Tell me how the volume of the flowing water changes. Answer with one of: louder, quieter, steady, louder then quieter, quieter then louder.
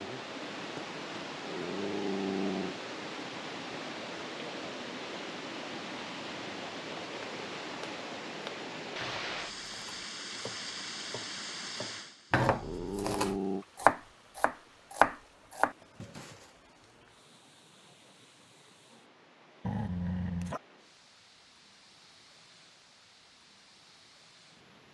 quieter.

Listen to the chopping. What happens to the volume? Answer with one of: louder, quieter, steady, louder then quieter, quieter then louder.
quieter then louder.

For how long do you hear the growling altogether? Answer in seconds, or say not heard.
3 s.